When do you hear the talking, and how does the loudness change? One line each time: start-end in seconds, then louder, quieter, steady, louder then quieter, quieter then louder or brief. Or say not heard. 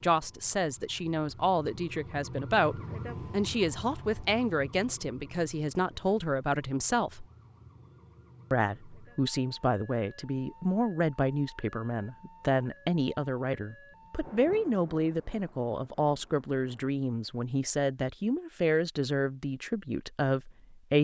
0.0-7.2 steady
8.5-20.9 steady.